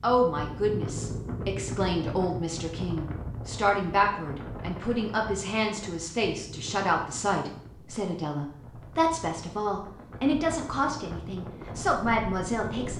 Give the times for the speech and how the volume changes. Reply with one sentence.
You can hear the speech from 0.0 to 12.9 s, at a steady volume.